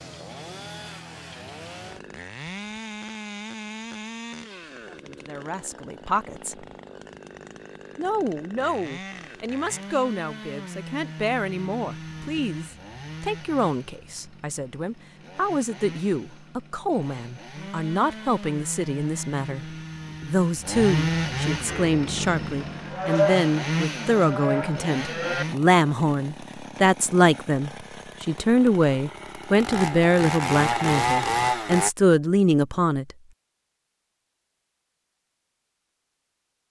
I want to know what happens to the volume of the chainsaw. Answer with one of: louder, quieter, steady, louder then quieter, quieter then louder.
louder.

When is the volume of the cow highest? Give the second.
23 s.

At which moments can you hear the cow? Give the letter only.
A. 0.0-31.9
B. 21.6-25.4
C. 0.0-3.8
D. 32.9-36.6
B.